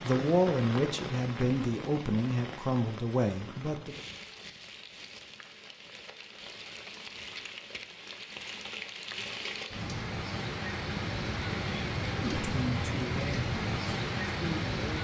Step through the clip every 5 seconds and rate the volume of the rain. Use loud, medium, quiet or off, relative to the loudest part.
medium, medium, loud.